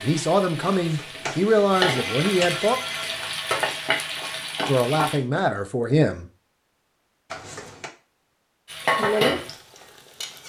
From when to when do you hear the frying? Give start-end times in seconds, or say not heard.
0.0-5.2, 8.7-10.4.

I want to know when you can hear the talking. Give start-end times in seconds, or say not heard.
0.0-2.8, 4.7-6.2.